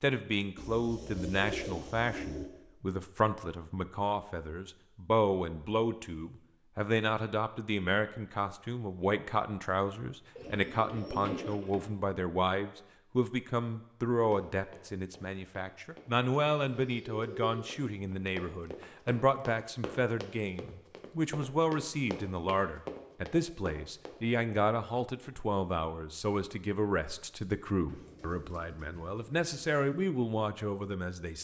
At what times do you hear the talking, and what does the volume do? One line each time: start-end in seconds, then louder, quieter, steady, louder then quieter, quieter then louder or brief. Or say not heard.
0.0-31.3 steady.